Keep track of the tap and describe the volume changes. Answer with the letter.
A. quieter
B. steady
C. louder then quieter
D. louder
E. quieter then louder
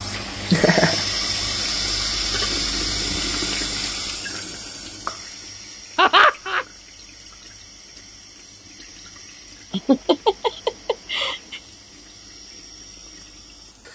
A.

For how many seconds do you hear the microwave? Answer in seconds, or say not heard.
not heard.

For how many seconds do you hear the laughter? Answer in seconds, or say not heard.
3 s.